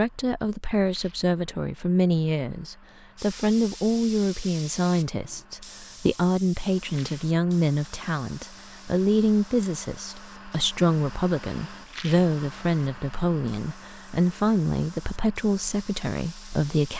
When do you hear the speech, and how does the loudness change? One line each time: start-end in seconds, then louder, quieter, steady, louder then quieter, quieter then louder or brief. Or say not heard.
0.0-16.9 steady.